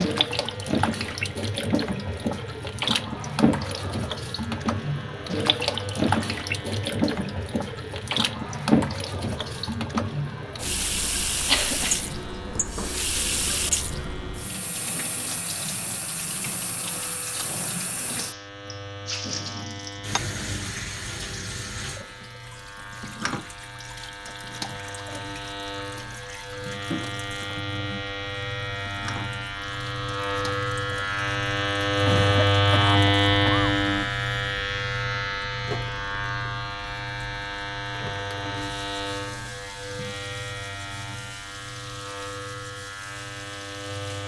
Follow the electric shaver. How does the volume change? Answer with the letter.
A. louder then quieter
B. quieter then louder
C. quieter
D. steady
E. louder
A.